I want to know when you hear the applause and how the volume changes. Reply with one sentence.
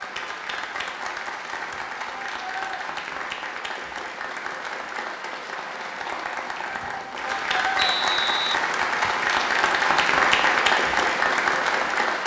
You can hear the applause from 0.0 to 12.2 s, getting louder.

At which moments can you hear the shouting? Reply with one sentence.
The shouting can be heard from 1.6 to 2.8 s and from 6.7 to 7.9 s.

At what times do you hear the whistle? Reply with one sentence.
The whistle can be heard from 7.8 to 9.2 s.